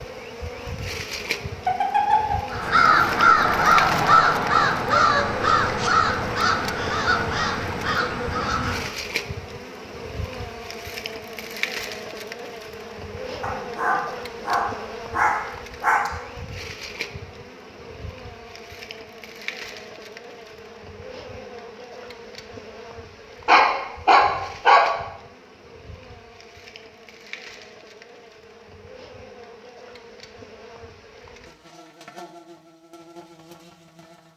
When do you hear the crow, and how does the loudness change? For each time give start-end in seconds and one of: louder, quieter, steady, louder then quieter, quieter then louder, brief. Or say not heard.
2.5-8.9 quieter.